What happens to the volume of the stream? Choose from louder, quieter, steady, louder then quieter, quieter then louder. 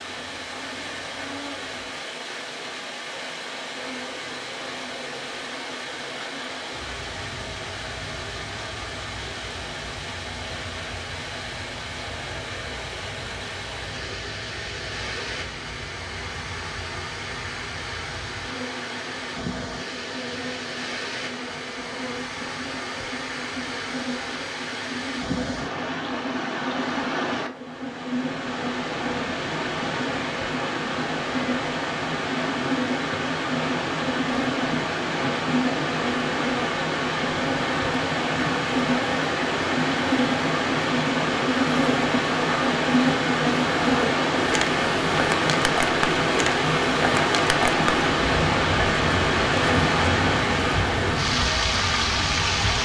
louder.